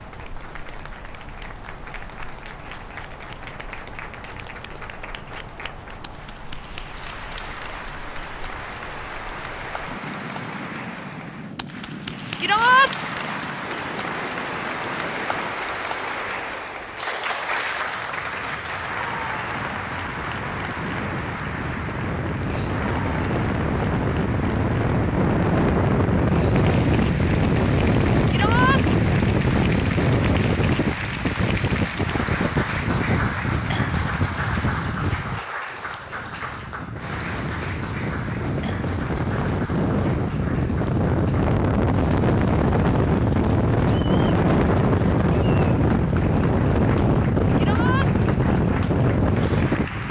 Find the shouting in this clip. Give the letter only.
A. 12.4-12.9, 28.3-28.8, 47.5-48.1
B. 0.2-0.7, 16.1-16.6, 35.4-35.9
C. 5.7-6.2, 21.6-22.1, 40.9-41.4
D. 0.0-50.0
A.